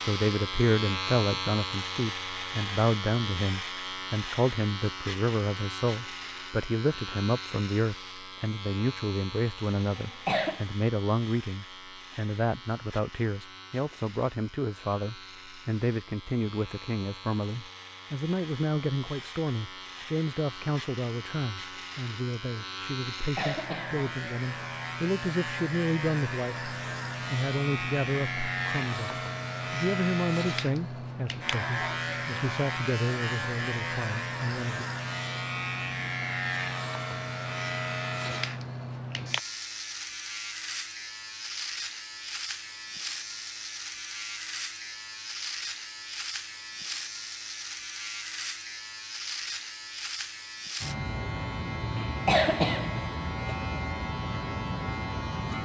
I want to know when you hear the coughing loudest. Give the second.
52 s.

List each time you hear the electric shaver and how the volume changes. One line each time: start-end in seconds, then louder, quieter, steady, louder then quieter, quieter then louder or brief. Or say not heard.
0.0-55.6 quieter then louder.